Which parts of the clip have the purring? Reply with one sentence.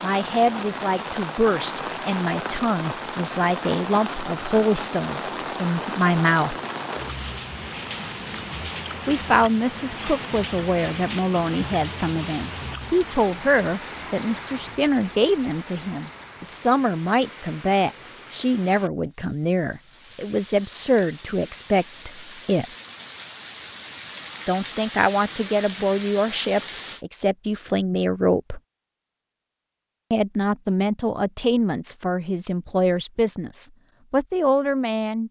The purring can't be heard in this clip.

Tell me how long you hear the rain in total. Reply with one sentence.
The rain can be heard for 27 seconds in total.